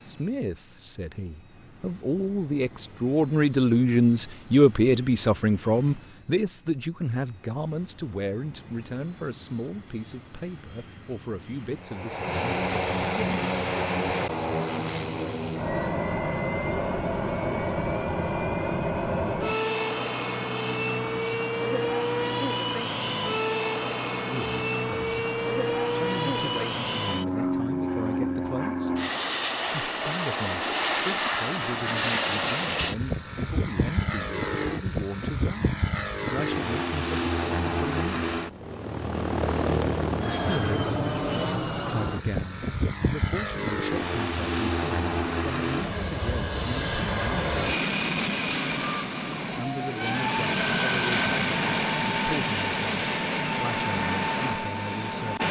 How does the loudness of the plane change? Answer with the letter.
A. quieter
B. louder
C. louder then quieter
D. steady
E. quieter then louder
B.